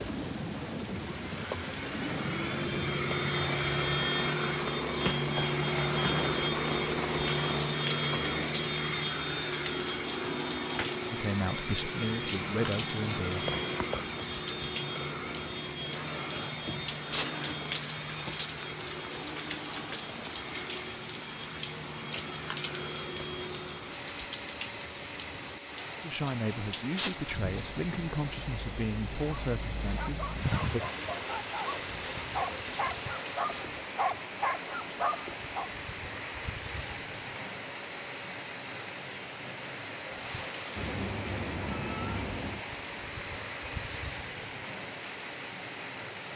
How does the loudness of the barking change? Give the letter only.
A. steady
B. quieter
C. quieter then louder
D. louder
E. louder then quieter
D.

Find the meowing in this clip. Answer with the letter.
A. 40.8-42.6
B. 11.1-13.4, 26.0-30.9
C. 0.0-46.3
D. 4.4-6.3
A.